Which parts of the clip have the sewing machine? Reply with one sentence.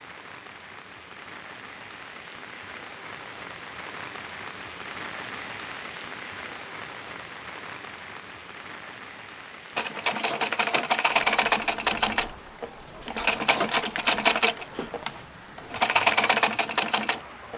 You can hear the sewing machine from 9.8 to 17.5 s.